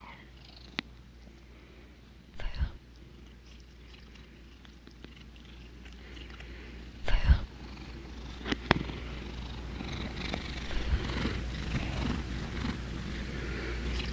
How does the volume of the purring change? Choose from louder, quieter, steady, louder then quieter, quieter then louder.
louder.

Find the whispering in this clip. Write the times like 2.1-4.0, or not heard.
2.4-2.8, 7.0-7.5, 10.7-11.1.